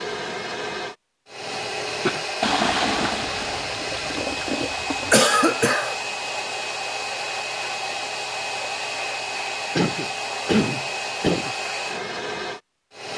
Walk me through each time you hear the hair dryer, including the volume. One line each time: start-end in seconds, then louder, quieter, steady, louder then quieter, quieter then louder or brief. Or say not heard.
0.0-13.1 steady.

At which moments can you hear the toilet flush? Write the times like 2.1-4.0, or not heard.
2.4-5.2.